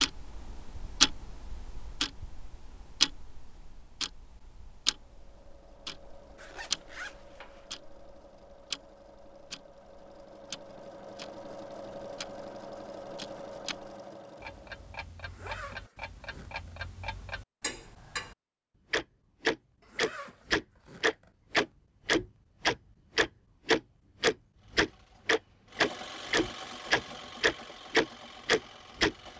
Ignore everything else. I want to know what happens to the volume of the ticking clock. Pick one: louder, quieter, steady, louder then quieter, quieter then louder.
quieter then louder.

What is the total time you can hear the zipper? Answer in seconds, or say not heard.
5 s.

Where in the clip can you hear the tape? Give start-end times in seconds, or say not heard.
not heard.